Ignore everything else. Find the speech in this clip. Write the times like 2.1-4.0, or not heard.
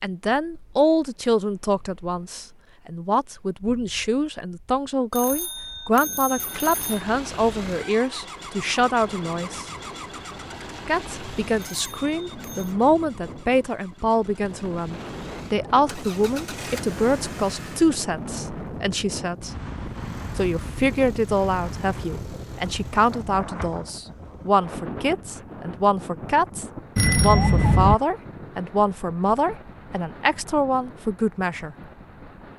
0.0-9.7, 10.8-19.5, 20.4-31.8.